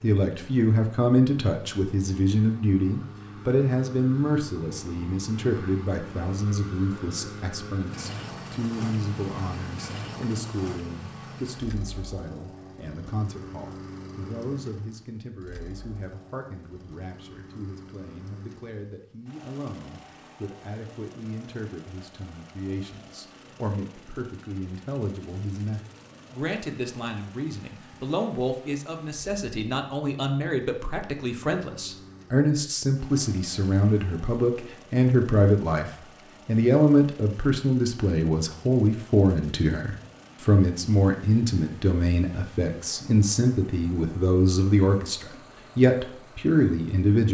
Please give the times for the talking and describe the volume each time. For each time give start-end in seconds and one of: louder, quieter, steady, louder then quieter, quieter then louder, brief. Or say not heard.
0.0-47.3 quieter then louder.